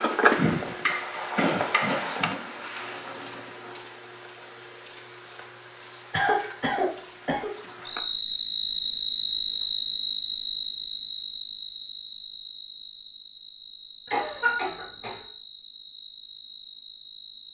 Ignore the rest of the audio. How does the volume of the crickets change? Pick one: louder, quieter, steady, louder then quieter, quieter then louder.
quieter.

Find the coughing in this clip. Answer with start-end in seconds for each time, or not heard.
1.4-2.4, 6.1-7.5, 14.1-15.2.